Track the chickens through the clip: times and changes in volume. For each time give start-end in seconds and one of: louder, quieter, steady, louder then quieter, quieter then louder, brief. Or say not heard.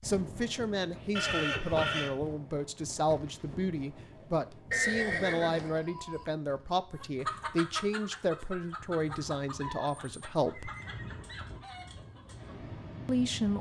7.0-12.6 quieter.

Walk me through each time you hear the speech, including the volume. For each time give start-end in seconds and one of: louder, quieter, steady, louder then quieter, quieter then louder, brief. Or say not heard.
0.0-10.7 steady
13.1-13.5 brief.